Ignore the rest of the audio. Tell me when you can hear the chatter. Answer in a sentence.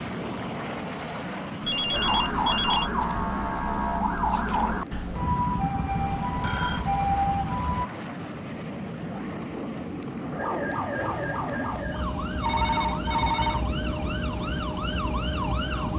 The chatter can't be heard in this clip.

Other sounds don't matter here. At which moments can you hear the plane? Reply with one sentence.
The plane can be heard from 0.0 to 15.9 s.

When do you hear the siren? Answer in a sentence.
The siren can be heard from 1.9 to 7.9 s and from 10.3 to 15.9 s.